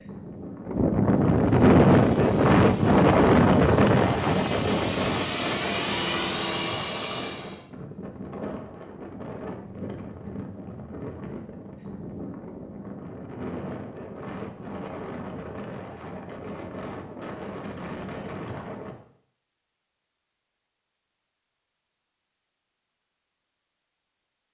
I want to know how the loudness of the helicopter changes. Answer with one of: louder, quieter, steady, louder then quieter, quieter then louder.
louder.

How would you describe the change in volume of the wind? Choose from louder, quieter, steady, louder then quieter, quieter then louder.
quieter.